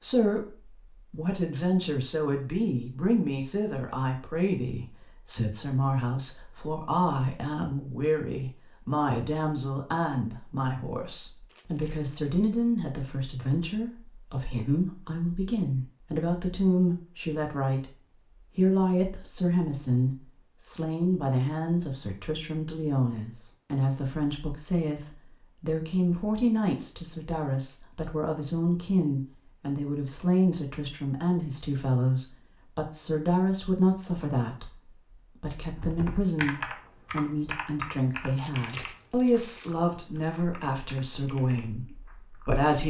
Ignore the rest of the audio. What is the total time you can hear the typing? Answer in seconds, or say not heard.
7 s.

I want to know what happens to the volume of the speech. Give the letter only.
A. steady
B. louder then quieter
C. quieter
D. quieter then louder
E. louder
A.